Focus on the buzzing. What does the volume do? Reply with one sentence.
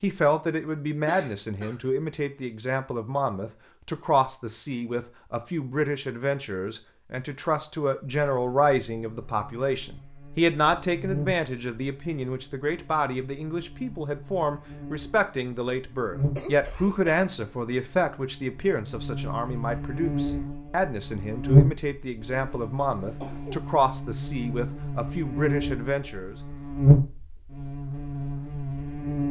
The loudness of the buzzing goes up.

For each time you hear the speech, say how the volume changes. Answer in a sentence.
The speech can be heard from 0.0 to 26.4 s, at a steady volume.